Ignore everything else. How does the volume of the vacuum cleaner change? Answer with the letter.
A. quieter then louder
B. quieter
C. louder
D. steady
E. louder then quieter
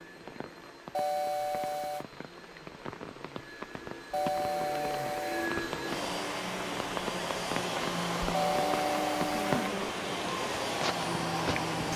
C.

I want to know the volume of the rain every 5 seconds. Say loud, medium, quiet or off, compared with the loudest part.
medium, loud, loud.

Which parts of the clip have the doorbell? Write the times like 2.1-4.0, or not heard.
0.9-2.0, 4.1-5.5, 8.3-9.6.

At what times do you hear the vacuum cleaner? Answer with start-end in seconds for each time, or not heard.
0.0-11.9.